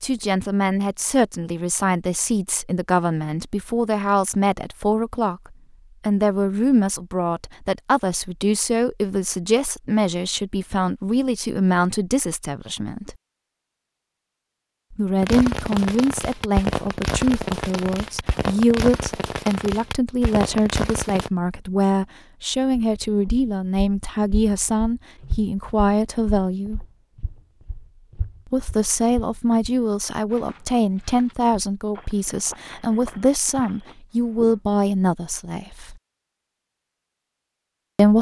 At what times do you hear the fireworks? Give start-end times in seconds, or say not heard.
15.2-21.3.